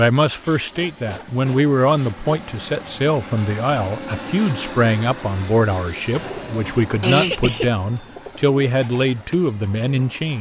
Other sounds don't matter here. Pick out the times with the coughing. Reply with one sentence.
You can hear the coughing from 0.3 to 2.4 s and from 7.0 to 7.7 s.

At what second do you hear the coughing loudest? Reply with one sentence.
The loudest moment of the coughing is at 7 seconds.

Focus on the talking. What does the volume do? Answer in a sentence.
The loudness of the talking stays about the same.